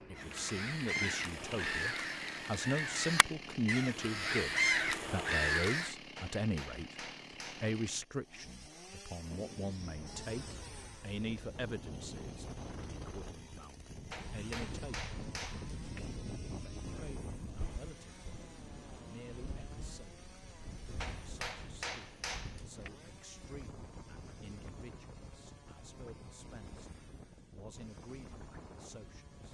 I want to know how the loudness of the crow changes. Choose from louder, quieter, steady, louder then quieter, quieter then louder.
louder.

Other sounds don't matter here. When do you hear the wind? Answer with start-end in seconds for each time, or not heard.
9.2-29.5.